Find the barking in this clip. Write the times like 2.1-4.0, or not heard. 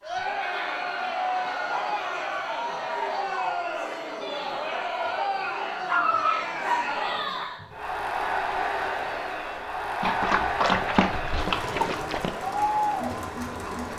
1.0-2.5, 5.8-7.5, 10.0-12.3.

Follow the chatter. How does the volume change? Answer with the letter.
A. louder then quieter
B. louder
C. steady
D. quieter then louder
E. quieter
C.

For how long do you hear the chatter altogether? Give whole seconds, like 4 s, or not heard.
14 s.